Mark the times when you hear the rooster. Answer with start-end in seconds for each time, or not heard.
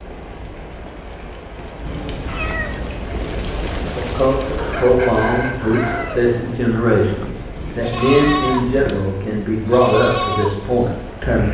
4.5-6.6.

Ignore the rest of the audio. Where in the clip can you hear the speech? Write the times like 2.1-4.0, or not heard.
3.9-11.4.